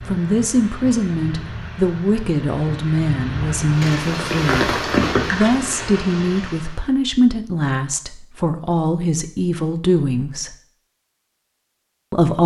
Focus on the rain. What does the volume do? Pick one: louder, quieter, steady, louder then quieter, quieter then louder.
louder then quieter.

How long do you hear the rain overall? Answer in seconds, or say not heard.
7 s.